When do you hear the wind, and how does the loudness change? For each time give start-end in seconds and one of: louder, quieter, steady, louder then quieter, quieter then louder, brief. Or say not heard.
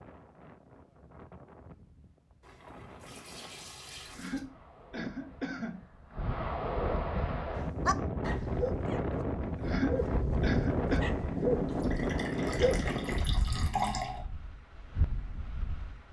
0.0-16.0 louder then quieter.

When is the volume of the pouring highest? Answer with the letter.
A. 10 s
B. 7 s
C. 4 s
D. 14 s
D.